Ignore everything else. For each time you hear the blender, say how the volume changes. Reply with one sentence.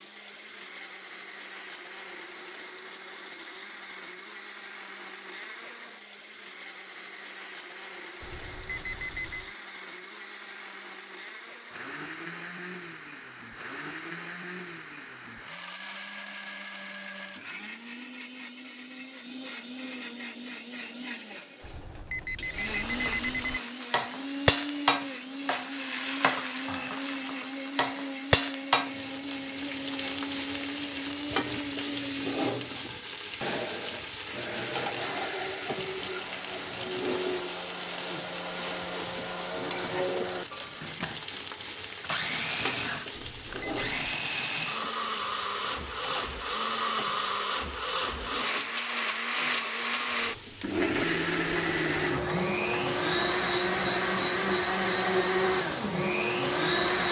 You can hear the blender from 0.0 to 57.0 s, getting louder.